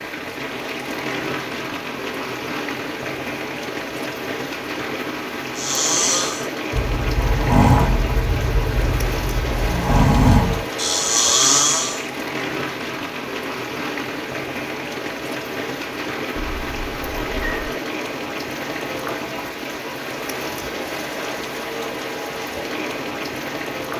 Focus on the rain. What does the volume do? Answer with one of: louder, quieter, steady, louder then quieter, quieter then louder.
steady.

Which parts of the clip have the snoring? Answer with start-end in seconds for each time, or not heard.
5.5-12.0.